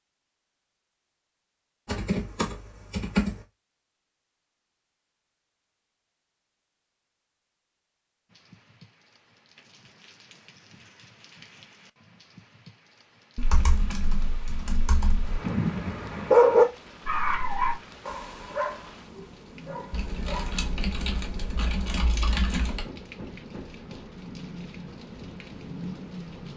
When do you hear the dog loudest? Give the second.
16 s.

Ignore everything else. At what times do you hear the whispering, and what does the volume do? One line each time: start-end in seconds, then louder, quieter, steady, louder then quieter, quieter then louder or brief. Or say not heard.
not heard.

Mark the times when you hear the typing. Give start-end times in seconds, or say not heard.
1.9-3.5, 13.3-15.4, 19.9-22.9.